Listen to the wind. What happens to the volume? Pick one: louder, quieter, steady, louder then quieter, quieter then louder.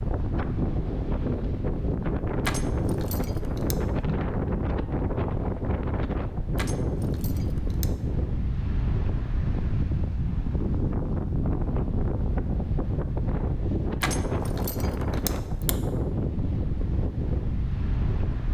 steady.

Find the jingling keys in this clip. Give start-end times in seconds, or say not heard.
2.4-3.8, 6.5-7.9, 14.0-15.8.